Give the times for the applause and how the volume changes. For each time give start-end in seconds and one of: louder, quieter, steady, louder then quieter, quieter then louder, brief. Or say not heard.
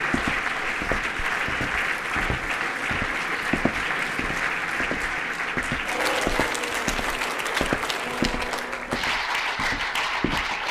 0.0-10.6 steady.